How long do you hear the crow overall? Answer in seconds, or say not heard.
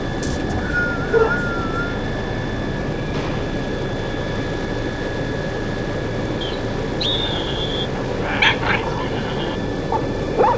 not heard.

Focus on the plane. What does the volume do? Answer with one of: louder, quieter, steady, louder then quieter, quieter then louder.
steady.